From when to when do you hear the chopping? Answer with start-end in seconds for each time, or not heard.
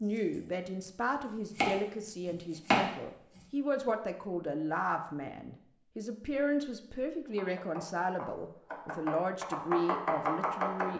0.0-3.5, 7.2-10.9.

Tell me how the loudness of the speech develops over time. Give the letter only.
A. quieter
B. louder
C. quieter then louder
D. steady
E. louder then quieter
D.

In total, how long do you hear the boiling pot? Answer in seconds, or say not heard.
not heard.